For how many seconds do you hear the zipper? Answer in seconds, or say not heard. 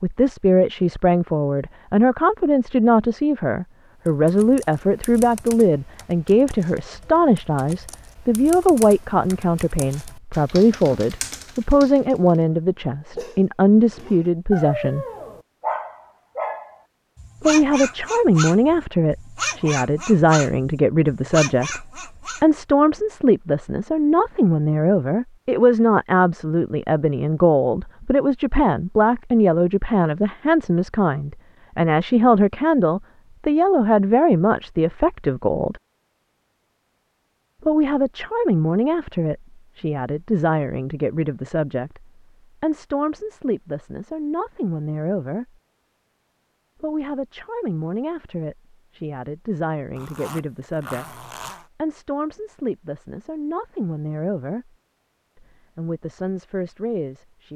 2 s.